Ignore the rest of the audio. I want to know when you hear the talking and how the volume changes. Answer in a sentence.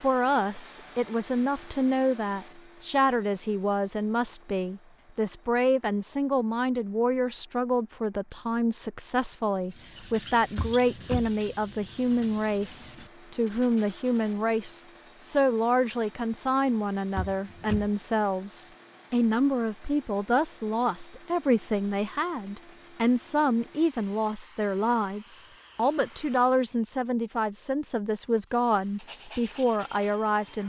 You can hear the talking from 0.0 to 30.6 s, at a steady volume.